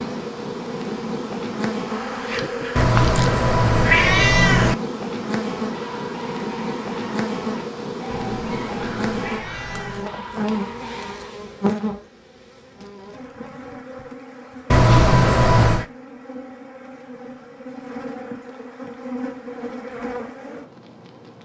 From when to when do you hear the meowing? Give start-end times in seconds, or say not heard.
2.8-4.8, 8.1-10.1, 14.7-15.8.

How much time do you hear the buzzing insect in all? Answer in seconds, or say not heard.
21 s.